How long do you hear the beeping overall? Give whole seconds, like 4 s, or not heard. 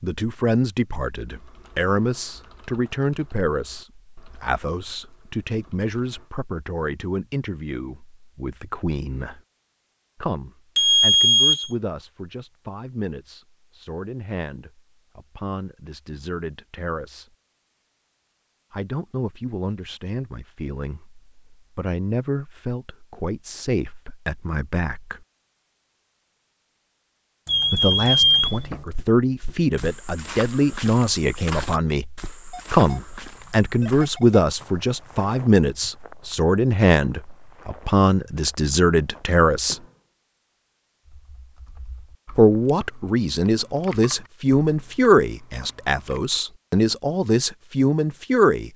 4 s.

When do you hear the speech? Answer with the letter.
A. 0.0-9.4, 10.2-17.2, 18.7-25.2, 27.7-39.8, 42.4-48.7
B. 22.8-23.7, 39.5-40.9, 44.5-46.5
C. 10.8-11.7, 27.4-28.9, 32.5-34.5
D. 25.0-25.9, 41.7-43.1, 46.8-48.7
A.